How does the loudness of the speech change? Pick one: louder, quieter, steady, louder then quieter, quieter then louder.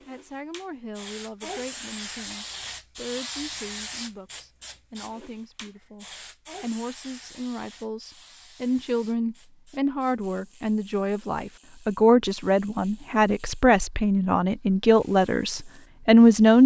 louder.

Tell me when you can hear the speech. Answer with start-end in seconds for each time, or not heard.
0.1-16.6.